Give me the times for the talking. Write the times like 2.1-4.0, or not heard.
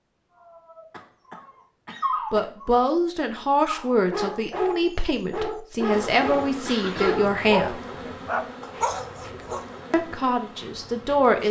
2.3-7.8, 9.9-11.4.